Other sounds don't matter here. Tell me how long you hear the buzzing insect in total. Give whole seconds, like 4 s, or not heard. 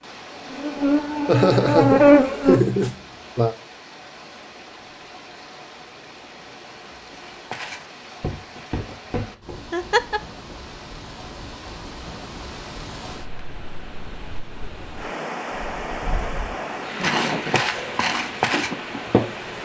5 s.